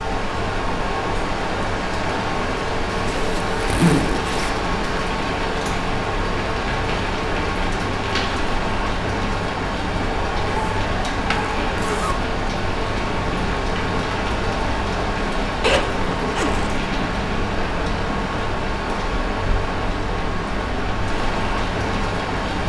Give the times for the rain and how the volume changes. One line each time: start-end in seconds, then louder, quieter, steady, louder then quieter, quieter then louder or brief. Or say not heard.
0.0-22.6 steady.